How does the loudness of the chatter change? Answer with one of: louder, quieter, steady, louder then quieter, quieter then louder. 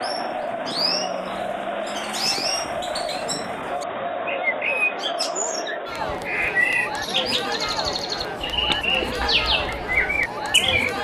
steady.